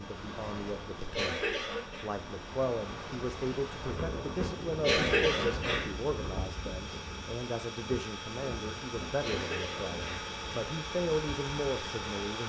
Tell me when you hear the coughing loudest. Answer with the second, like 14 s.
5 s.